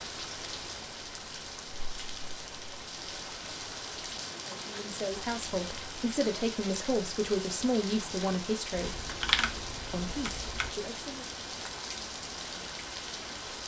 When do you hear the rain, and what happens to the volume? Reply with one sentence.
The rain can be heard from 0.0 to 13.6 s, at a steady volume.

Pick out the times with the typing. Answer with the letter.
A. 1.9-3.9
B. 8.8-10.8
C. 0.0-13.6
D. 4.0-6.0
B.